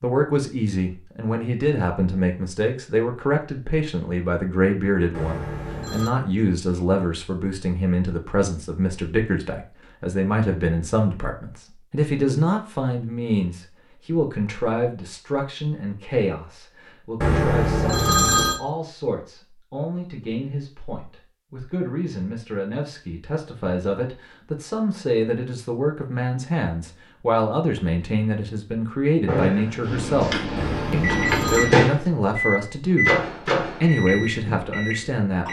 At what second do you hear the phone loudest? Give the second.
18 s.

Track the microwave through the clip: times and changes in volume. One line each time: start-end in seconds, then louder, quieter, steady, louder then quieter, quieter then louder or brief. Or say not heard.
29.2-35.4 louder then quieter.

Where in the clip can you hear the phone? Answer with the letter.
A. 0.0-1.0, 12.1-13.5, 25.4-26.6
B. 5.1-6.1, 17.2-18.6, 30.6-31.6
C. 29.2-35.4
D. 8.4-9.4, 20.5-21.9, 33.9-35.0
B.